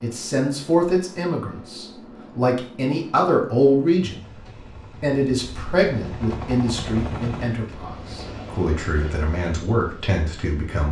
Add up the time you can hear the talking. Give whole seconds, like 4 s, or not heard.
10 s.